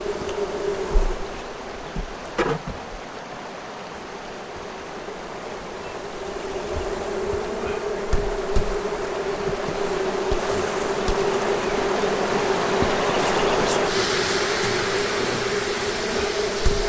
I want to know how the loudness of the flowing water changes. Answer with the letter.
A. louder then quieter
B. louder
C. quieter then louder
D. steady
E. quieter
B.